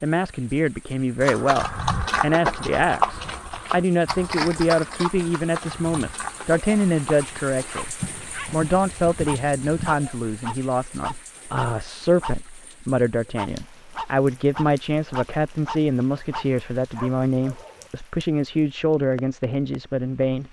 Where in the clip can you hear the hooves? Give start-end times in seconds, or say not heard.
1.2-9.9.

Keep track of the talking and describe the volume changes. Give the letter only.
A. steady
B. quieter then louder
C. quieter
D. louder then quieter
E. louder
A.